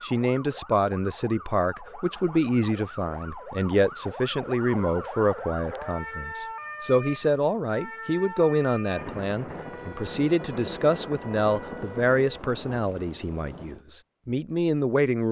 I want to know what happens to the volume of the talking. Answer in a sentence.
The loudness of the talking stays about the same.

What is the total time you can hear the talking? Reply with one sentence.
The talking can be heard for 15 seconds in total.